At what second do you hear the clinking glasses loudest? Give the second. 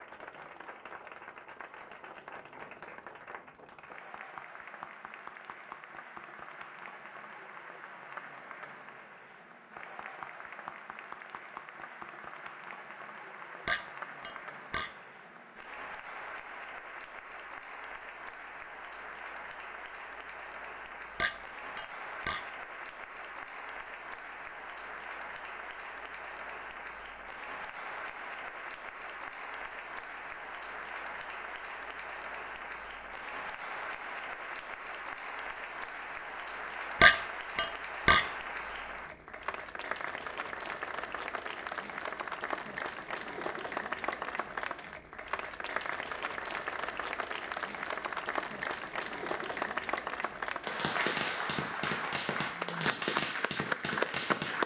37 s.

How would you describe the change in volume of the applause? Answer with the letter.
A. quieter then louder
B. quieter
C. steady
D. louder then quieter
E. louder
E.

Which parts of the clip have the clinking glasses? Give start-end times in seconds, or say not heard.
13.7-14.9, 21.2-22.4, 37.0-38.2.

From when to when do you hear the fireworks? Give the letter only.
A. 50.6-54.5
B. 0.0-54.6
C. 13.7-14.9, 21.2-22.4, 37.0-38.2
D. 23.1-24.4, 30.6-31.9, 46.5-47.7
A.